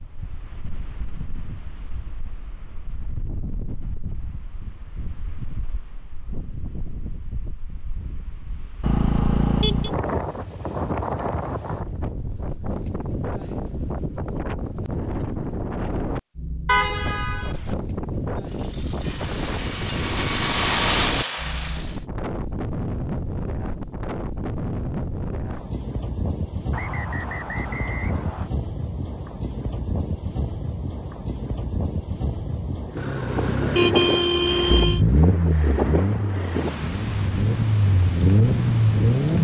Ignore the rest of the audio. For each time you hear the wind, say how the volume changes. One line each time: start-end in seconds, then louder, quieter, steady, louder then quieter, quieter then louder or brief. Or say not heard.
0.0-39.3 louder.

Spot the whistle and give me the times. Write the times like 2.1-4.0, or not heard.
26.7-28.5.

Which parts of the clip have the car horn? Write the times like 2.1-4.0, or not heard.
8.8-9.9, 16.6-17.8, 33.0-35.0.